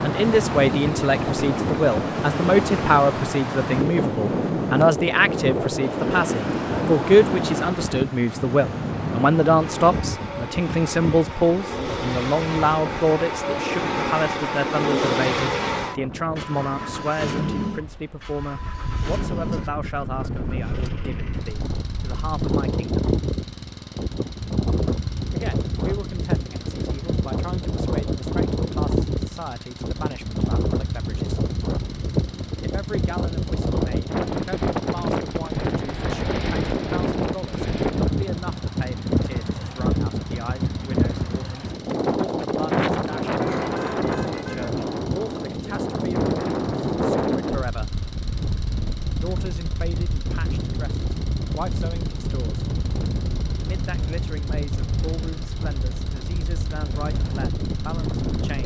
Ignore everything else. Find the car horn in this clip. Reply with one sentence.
The car horn can be heard from 43.4 to 44.7 s.